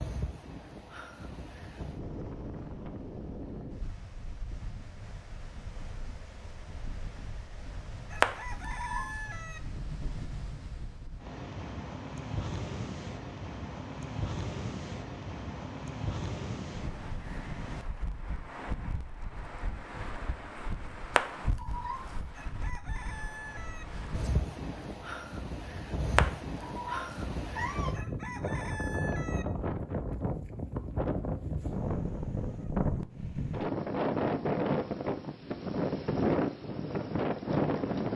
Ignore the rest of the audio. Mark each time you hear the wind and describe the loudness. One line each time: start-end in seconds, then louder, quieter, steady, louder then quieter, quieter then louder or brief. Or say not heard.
0.0-38.1 louder.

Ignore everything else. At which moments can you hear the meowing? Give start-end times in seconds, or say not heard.
8.2-9.1, 21.1-22.0, 26.1-27.9.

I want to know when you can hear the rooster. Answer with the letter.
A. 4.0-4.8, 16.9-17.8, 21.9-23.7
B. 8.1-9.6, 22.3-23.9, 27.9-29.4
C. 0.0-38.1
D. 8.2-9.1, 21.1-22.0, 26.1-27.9
B.